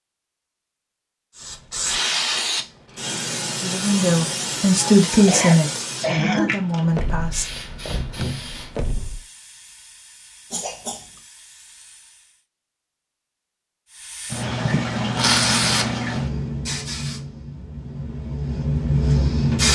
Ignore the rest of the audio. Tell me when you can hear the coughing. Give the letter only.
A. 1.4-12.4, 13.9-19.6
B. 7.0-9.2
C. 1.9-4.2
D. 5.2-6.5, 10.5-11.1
D.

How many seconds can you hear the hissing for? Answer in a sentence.
You can hear the hissing for 17 seconds altogether.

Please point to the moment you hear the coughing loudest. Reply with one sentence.
The loudest moment of the coughing is at 6 seconds.